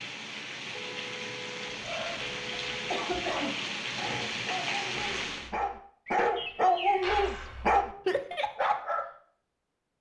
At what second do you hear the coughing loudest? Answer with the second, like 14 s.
3 s.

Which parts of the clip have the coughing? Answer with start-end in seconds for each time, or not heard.
2.5-4.4.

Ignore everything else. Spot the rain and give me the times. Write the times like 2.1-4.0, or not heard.
0.0-5.5.